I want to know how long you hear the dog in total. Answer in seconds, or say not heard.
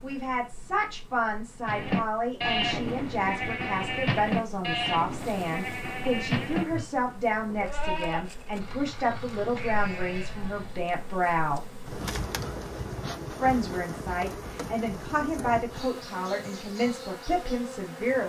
not heard.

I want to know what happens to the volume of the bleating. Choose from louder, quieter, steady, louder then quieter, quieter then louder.
quieter.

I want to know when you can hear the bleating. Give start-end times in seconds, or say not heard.
1.6-10.8.